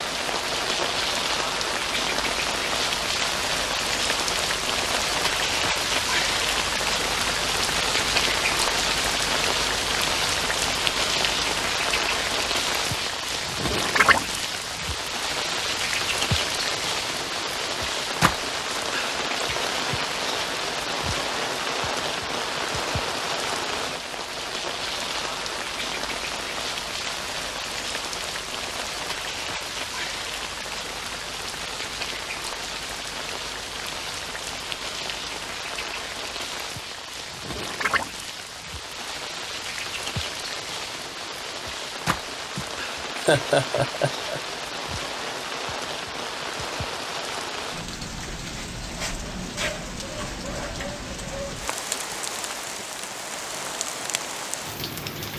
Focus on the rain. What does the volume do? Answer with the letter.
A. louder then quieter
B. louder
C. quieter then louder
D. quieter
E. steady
D.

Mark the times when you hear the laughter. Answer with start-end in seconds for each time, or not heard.
42.5-44.4.